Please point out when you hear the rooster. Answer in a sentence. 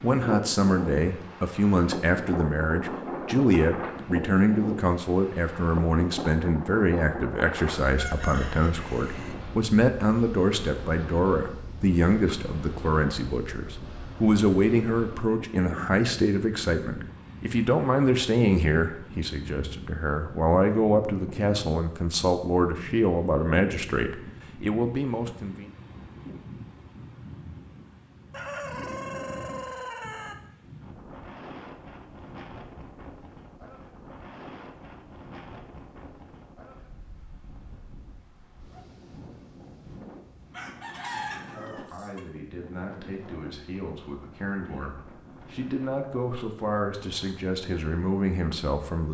The rooster can be heard from 7.7 to 9.3 s, from 28.3 to 30.4 s and from 40.5 to 42.2 s.